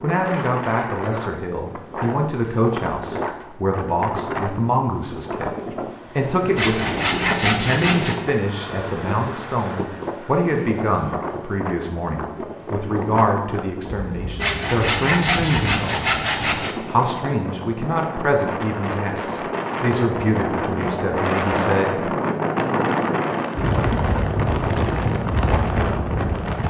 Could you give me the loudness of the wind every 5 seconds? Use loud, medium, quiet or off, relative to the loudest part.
medium, medium, medium, medium, loud, loud.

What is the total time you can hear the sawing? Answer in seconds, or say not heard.
4 s.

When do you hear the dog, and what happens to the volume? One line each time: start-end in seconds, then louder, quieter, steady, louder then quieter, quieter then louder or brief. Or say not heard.
not heard.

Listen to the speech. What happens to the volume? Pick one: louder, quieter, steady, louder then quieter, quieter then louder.
steady.